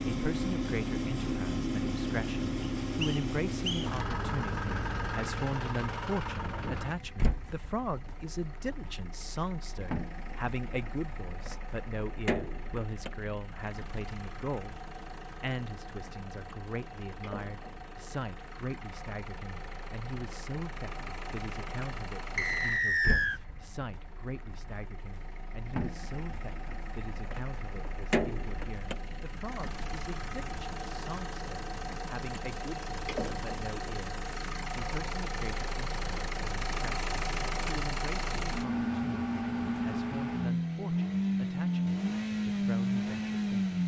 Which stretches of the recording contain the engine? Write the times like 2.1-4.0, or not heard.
0.0-43.8.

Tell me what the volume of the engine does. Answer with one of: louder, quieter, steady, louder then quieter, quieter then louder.
quieter then louder.